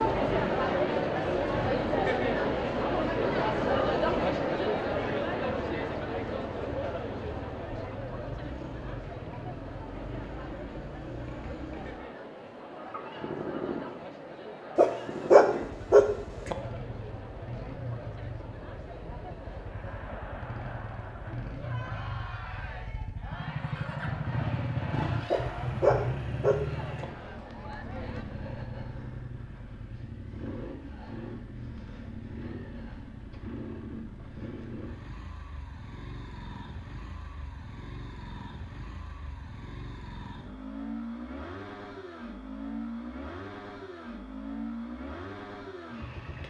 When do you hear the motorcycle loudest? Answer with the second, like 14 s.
25 s.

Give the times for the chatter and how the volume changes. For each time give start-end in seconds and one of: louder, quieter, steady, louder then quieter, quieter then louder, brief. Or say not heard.
0.0-28.2 quieter.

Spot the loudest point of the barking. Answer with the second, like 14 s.
15 s.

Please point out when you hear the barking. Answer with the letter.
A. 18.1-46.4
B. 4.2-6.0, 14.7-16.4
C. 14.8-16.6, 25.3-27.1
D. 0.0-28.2
C.